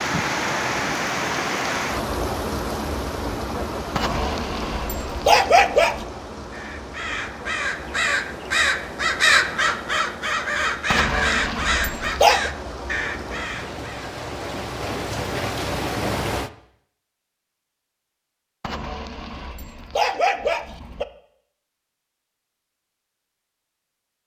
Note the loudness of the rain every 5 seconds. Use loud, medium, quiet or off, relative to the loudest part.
loud, medium, medium, loud, off.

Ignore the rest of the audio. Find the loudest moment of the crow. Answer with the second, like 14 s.
9 s.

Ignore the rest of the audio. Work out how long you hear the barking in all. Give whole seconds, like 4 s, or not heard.
6 s.